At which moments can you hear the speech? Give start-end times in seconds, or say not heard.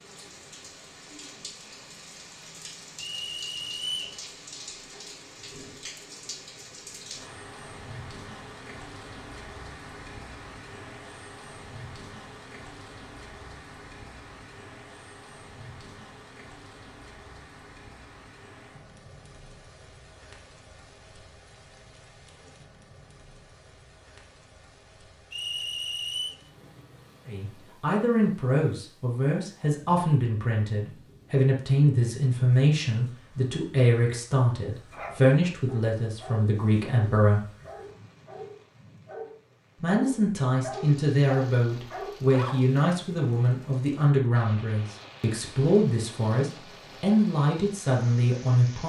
27.2-37.5, 39.8-48.8.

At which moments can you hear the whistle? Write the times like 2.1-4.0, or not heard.
3.1-4.2, 25.3-26.4.